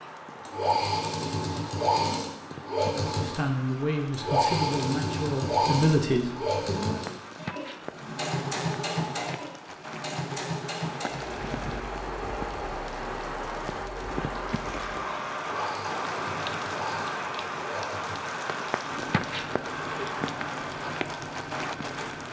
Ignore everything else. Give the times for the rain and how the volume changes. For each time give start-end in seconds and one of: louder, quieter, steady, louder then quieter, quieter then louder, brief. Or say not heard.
0.0-22.2 louder.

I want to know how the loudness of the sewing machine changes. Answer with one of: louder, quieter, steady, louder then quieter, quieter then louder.
quieter.